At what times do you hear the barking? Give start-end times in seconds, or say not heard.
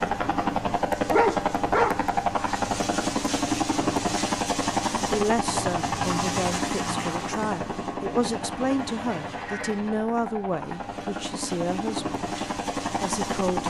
1.1-2.5.